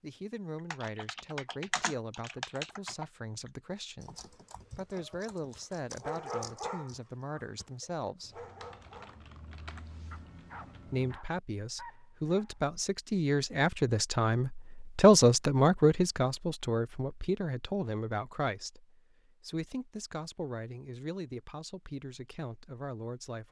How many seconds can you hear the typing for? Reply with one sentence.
The typing can be heard for 11 seconds in total.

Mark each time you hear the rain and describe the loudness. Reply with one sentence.
The rain can't be heard in this clip.